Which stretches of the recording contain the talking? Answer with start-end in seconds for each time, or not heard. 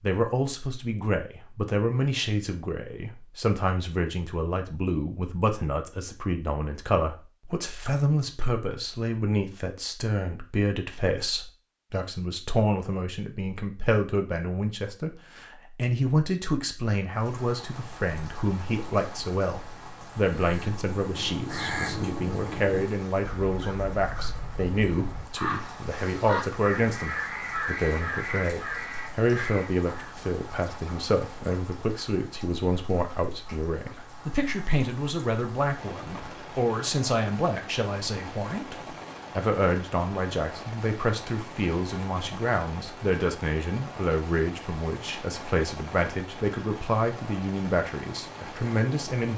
0.0-49.3.